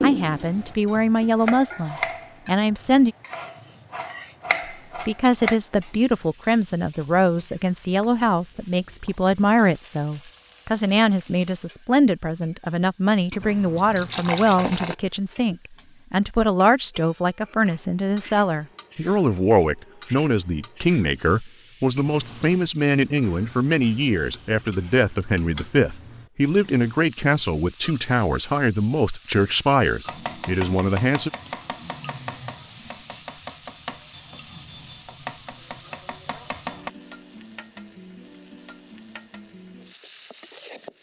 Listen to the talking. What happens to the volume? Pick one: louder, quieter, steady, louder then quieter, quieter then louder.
steady.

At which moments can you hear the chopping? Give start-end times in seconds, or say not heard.
0.0-5.5, 30.1-36.9.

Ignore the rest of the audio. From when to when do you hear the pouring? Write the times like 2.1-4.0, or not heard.
13.3-14.9, 21.9-22.6.